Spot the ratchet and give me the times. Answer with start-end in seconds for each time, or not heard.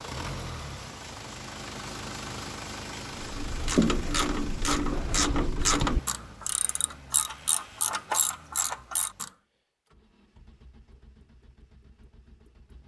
3.1-9.3.